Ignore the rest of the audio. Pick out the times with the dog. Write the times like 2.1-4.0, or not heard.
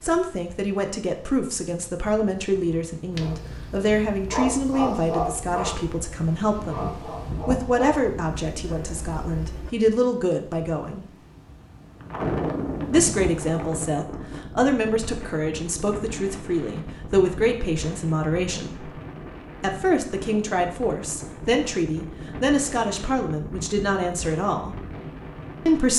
3.1-9.7.